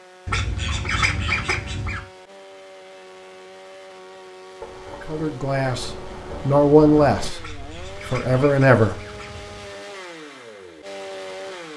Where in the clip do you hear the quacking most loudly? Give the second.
1 s.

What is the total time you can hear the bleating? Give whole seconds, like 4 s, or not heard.
not heard.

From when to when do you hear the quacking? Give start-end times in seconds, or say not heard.
0.2-2.0, 7.3-9.8.